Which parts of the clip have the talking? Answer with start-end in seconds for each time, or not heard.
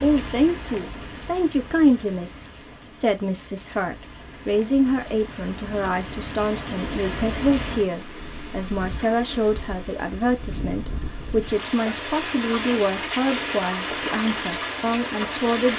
0.0-15.7.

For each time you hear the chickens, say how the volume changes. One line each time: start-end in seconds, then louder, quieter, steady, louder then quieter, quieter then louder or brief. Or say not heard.
not heard.